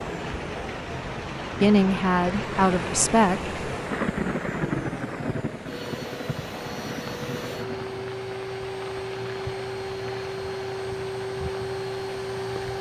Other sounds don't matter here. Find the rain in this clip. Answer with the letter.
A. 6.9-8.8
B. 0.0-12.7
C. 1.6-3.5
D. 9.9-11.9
B.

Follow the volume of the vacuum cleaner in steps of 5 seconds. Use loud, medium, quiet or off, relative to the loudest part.
medium, loud, loud.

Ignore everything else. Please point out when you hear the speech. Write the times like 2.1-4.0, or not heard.
1.6-3.5.